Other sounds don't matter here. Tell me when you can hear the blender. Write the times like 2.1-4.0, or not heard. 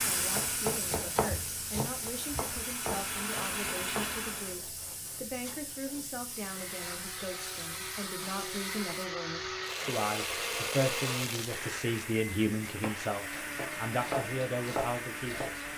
0.0-4.6, 6.3-15.7.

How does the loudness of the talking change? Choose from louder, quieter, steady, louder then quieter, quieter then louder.
louder.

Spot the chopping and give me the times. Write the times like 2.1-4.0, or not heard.
0.1-4.2, 12.7-15.7.